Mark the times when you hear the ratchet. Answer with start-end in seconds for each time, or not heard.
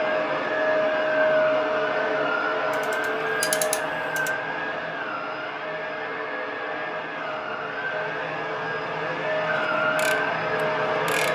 2.7-4.3, 9.6-11.3.